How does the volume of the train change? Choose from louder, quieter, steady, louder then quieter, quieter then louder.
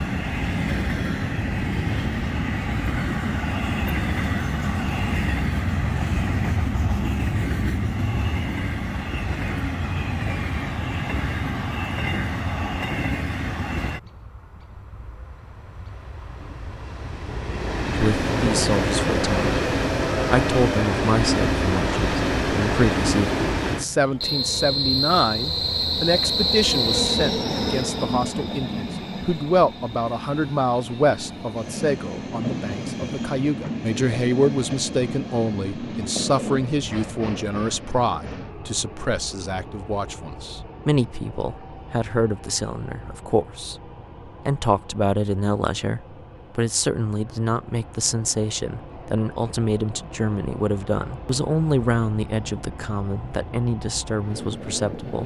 quieter.